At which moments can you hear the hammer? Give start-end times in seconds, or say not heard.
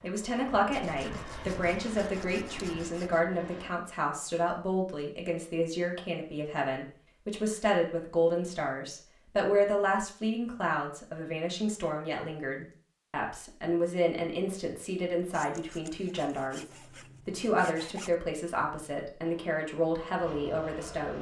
not heard.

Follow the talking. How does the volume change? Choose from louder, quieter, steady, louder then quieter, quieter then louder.
steady.